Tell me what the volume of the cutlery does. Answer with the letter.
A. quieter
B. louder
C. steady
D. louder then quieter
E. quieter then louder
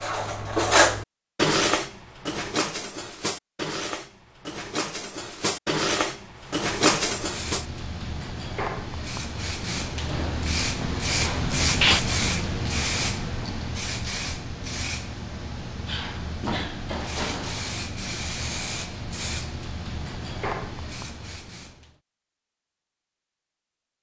E.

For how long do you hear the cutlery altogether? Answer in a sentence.
The cutlery can be heard for 8 seconds in total.